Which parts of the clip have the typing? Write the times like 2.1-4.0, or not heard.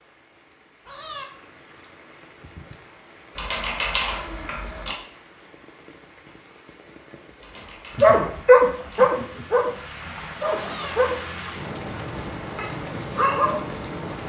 3.4-5.0, 7.4-9.2.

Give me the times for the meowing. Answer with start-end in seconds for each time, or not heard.
0.8-1.2, 10.5-10.9.